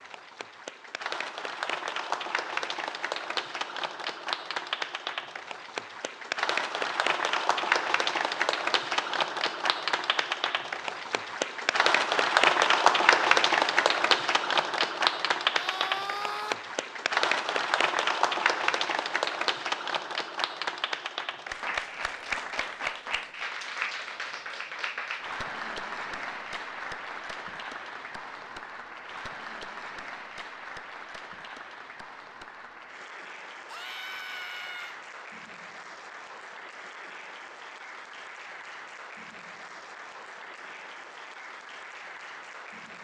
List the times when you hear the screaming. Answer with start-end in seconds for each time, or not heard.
15.6-16.6, 33.6-35.0.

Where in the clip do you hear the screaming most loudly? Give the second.
16 s.